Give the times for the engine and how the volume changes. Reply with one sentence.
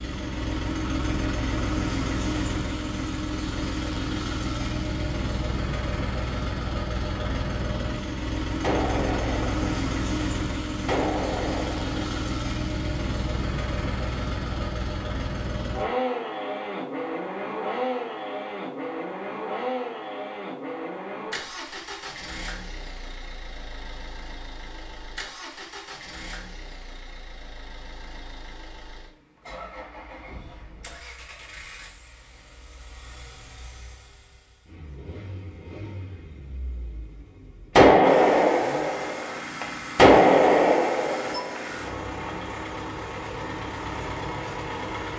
The engine can be heard from 0.0 to 45.1 s, getting quieter then louder.